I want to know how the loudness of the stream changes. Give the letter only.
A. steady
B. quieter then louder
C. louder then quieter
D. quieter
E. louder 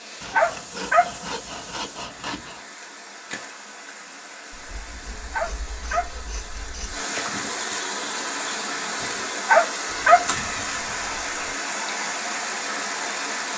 E.